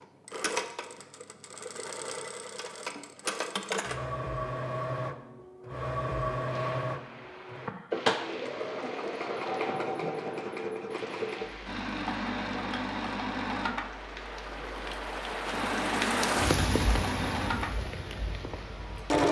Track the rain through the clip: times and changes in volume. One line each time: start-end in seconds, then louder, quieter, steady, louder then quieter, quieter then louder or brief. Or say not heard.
6.5-19.2 louder.